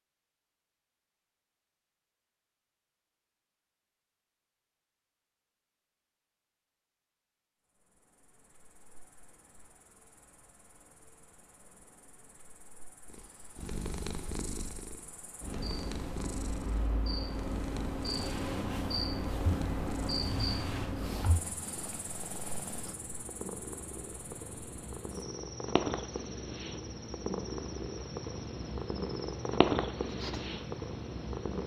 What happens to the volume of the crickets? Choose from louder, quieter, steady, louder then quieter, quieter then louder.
louder then quieter.